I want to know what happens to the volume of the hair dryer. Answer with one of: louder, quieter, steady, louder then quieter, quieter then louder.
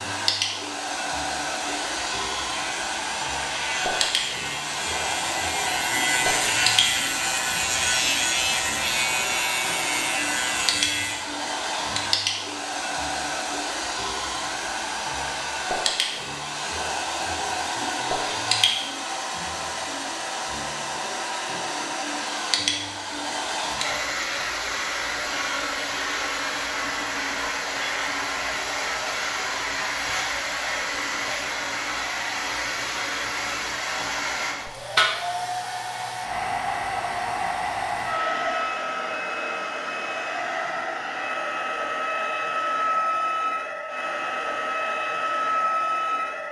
steady.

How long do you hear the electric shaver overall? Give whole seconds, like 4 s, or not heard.
10 s.